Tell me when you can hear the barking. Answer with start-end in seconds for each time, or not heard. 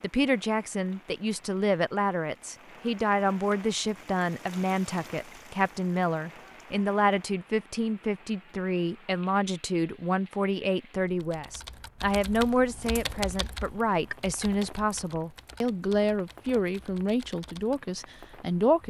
not heard.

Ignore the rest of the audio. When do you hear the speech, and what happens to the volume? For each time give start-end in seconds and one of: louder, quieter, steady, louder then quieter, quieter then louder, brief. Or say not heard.
0.0-18.8 steady.